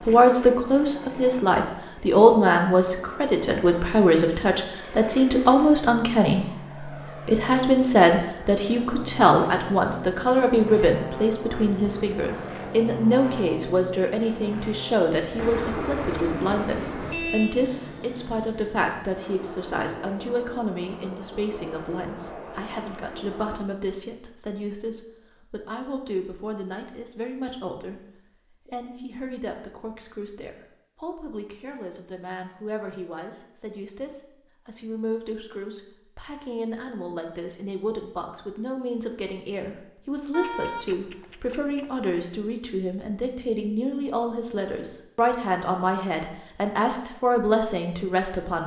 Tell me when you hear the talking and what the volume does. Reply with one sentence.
You can hear the talking from 0.1 to 48.6 s, getting quieter then louder.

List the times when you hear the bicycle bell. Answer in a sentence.
The bicycle bell can't be heard in this clip.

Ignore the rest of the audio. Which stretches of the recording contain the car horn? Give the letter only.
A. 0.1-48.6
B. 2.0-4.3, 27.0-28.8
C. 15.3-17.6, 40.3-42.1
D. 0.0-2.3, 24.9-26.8
C.